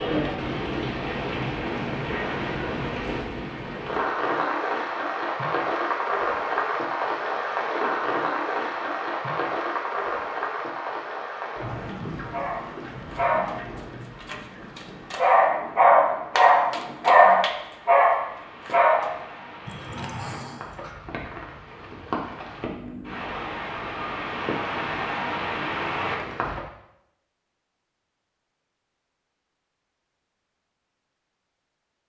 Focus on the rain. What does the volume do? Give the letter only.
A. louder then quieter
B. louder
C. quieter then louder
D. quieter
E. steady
C.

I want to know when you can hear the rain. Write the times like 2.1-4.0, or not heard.
0.0-26.6.